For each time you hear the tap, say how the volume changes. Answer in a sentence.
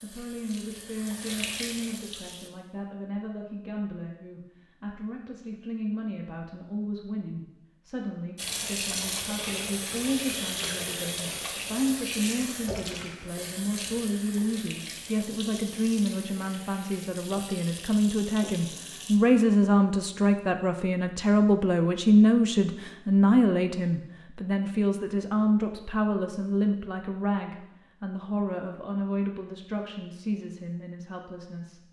You can hear the tap briefly from 0.0 to 2.5 s; and from 8.3 to 19.2 s, getting quieter.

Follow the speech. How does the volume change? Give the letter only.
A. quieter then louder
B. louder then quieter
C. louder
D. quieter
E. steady
B.